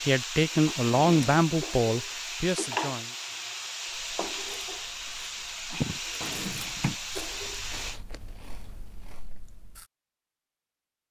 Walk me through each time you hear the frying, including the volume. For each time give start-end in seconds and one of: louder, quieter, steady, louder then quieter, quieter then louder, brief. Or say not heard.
0.0-8.0 steady.